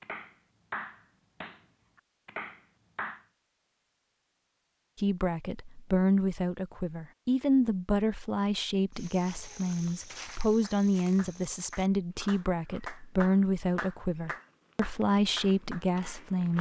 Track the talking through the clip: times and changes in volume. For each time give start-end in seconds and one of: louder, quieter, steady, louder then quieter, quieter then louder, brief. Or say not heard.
5.0-16.5 steady.